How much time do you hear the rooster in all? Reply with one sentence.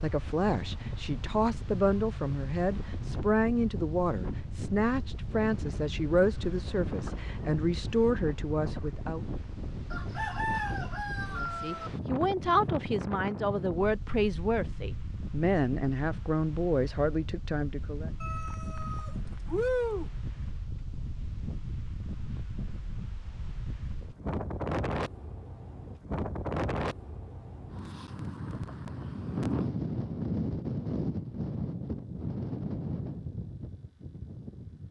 You can hear the rooster for 4 seconds altogether.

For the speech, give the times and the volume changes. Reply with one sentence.
The speech can be heard from 0.0 to 9.2 s, at a steady volume; and from 11.3 to 18.1 s, at a steady volume.